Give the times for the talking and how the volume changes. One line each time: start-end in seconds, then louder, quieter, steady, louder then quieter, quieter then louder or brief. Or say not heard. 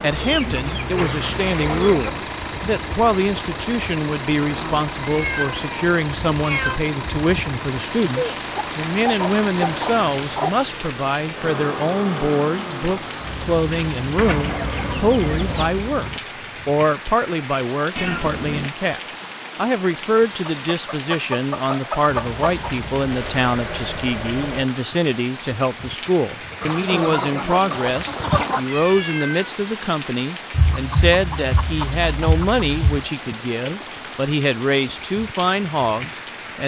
0.0-36.6 steady.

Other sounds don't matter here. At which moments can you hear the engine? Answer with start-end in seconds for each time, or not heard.
0.0-16.2, 22.1-24.6.